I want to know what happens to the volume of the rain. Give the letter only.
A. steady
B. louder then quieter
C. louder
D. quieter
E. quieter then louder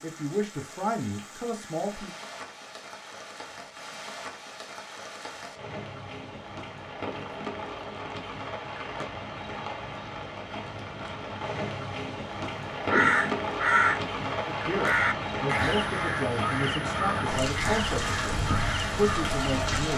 C.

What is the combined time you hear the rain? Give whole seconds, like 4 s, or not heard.
20 s.